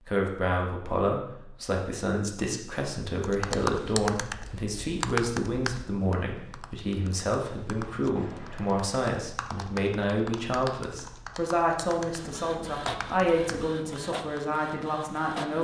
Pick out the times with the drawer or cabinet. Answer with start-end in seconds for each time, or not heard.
not heard.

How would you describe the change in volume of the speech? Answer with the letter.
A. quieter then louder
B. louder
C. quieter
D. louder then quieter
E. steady
E.